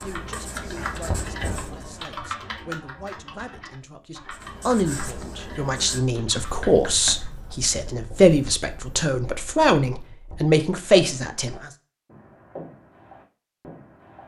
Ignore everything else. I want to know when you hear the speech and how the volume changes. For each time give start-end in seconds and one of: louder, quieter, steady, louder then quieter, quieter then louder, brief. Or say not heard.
0.0-11.7 louder.